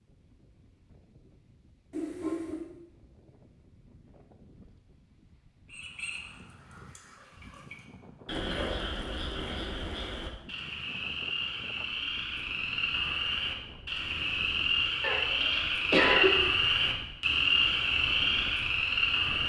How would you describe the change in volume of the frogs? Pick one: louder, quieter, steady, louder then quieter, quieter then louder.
louder.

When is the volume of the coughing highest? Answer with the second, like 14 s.
16 s.